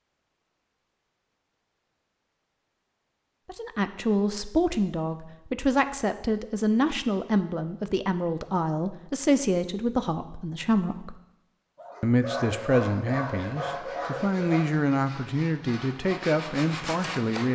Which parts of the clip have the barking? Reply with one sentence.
The barking can be heard from 11.8 to 14.7 s.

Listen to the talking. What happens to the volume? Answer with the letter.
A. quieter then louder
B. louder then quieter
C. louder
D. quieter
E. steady
E.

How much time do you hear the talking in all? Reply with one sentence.
The talking can be heard for 13 seconds in total.